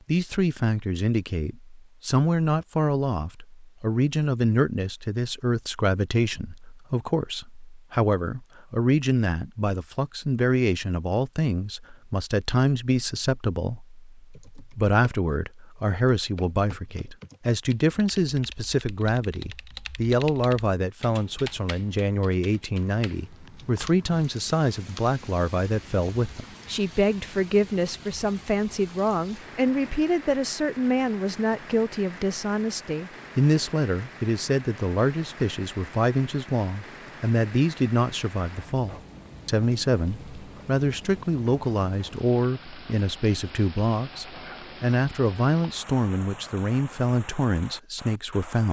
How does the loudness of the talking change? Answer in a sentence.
The volume of the talking stays about the same.